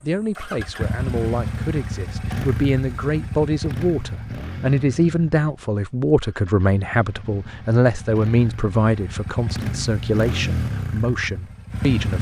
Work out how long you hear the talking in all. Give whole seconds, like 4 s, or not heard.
12 s.